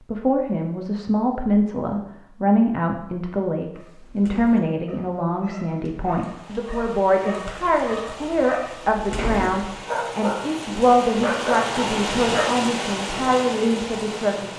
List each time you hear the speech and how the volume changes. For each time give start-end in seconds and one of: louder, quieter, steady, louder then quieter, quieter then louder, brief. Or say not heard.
0.1-14.5 steady.